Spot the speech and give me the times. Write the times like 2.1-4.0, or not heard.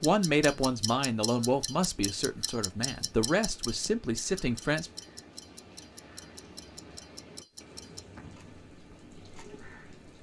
0.0-4.9.